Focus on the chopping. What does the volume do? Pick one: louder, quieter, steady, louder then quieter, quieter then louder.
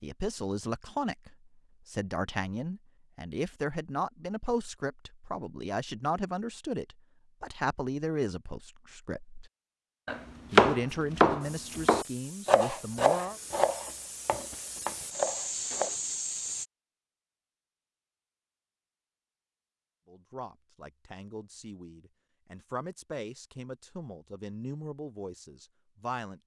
quieter.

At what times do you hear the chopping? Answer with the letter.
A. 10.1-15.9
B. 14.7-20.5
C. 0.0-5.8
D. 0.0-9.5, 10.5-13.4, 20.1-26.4
A.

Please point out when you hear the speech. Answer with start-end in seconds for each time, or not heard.
0.0-9.5, 10.5-13.4, 20.1-26.4.